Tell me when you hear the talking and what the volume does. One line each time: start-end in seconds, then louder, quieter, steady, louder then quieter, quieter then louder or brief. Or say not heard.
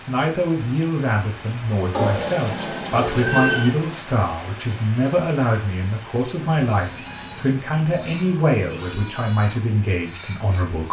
0.0-10.8 steady.